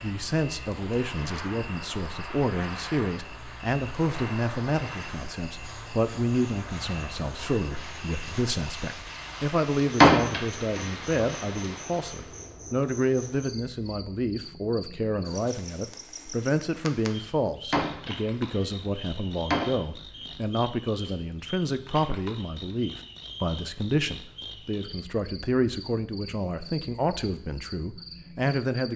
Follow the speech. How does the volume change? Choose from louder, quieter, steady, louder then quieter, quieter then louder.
steady.